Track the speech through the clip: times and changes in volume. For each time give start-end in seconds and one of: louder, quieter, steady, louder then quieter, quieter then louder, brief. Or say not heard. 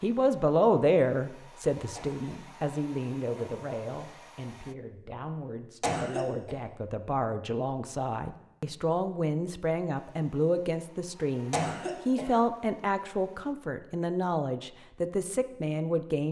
0.0-16.2 quieter then louder.